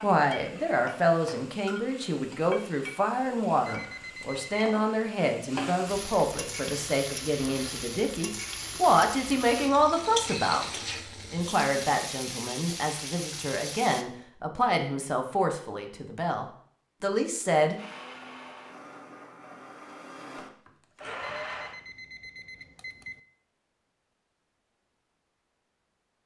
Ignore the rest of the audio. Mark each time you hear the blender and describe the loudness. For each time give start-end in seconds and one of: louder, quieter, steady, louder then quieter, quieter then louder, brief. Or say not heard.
17.8-21.8 louder.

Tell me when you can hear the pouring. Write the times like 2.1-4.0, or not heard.
not heard.